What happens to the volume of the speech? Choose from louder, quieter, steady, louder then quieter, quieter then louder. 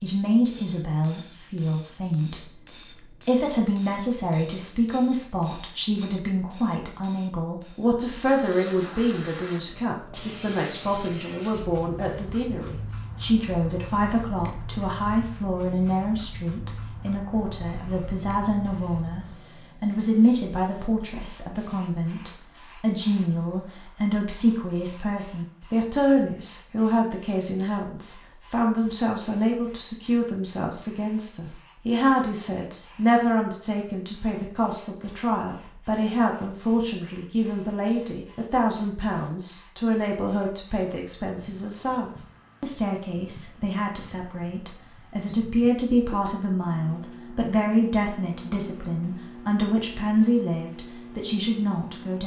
steady.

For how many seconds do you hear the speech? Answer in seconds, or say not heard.
52 s.